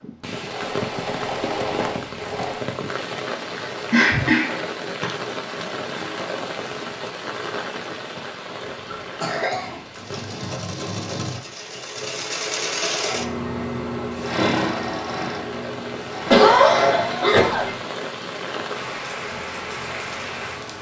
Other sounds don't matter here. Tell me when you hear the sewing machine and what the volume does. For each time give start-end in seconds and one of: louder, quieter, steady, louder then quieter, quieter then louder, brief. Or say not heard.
0.3-2.6 brief
9.9-18.0 louder then quieter.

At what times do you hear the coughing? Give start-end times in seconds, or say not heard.
3.9-5.2, 8.9-10.6, 16.3-17.8.